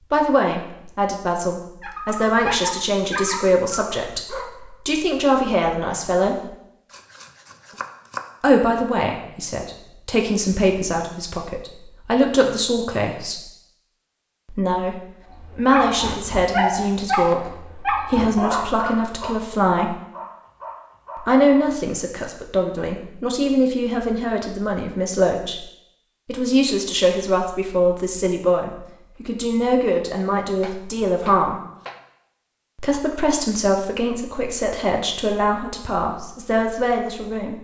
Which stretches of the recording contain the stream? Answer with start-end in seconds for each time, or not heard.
not heard.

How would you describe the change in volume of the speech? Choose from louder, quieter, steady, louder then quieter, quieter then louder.
steady.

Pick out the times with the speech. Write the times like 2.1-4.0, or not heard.
0.1-6.5, 8.4-13.4, 14.4-19.9, 21.1-25.6, 26.2-31.6, 32.8-37.6.